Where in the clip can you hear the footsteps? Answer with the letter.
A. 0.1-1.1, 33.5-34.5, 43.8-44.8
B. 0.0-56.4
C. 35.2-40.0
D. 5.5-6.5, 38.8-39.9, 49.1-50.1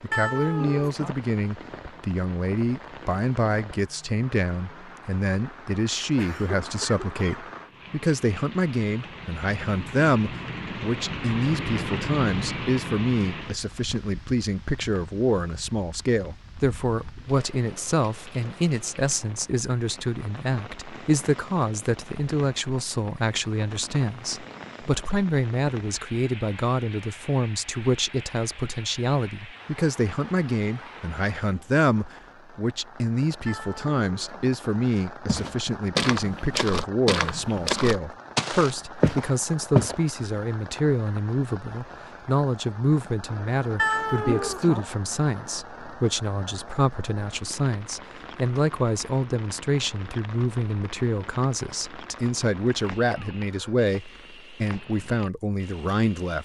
C.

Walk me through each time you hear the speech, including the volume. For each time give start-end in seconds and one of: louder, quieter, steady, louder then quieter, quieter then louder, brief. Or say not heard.
0.0-56.4 steady.